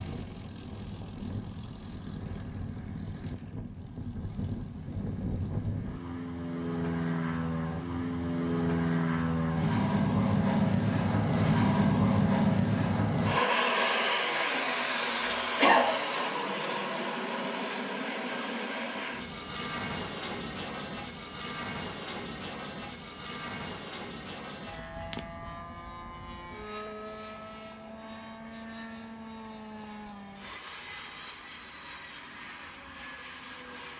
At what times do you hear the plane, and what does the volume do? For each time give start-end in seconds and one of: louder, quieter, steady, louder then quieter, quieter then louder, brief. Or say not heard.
0.0-33.9 louder then quieter.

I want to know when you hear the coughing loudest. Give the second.
16 s.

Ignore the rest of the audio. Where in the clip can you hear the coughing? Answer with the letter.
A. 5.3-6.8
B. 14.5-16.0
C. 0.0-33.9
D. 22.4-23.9
B.